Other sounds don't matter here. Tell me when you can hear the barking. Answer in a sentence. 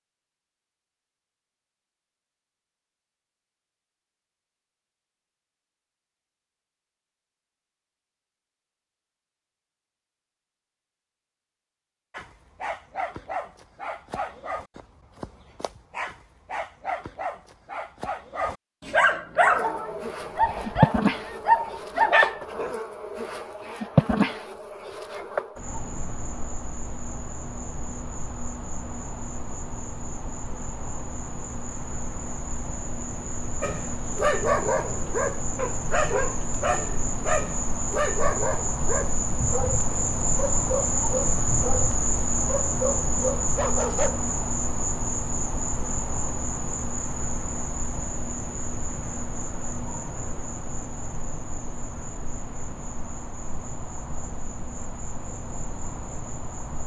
The barking can be heard from 12.1 to 22.8 s and from 33.6 to 44.2 s.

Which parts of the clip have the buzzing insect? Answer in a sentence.
You can hear the buzzing insect from 19.4 to 56.8 s.